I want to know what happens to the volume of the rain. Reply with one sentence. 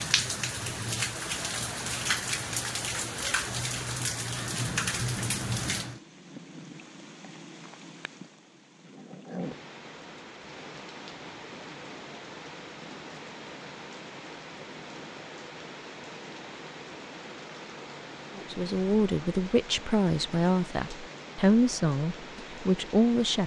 The volume of the rain goes down.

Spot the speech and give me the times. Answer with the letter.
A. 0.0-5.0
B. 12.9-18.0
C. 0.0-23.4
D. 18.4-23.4
D.